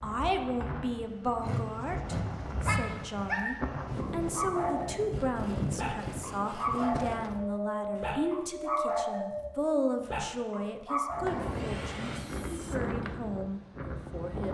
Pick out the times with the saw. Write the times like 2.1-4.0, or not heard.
1.4-3.3, 5.1-7.2, 11.2-12.8.